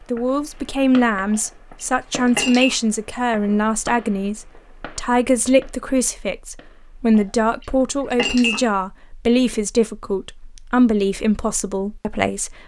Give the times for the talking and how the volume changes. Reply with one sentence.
You can hear the talking from 0.1 to 12.6 s, at a steady volume.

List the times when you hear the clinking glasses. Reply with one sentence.
The clinking glasses can be heard from 1.3 to 2.8 s and from 7.1 to 8.7 s.